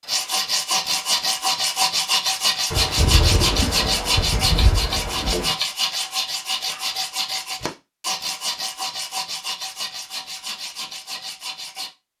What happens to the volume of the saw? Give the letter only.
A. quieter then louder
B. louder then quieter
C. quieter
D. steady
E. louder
C.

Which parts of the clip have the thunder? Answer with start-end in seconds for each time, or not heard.
2.7-5.5.